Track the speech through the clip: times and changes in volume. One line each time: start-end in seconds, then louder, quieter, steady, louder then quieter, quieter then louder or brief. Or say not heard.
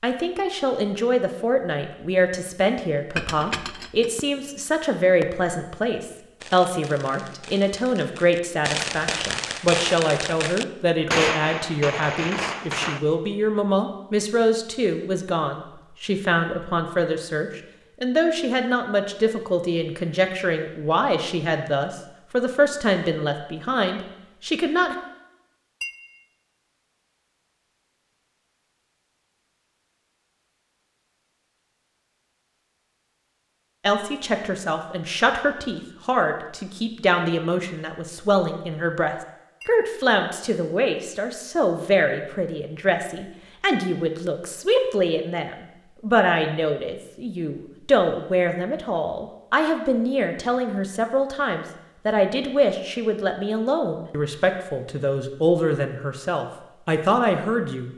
0.0-24.9 steady
33.8-57.9 steady.